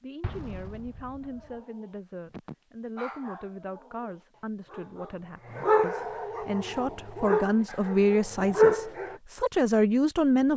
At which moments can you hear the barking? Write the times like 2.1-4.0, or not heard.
1.2-9.2.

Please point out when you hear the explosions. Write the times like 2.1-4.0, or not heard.
0.2-1.6.